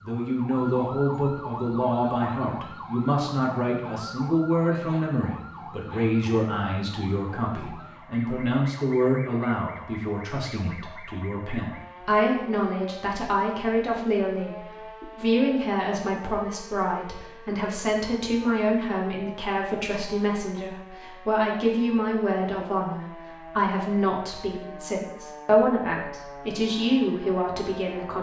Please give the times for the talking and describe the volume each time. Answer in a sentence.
You can hear the talking from 0.0 to 28.1 s, at a steady volume.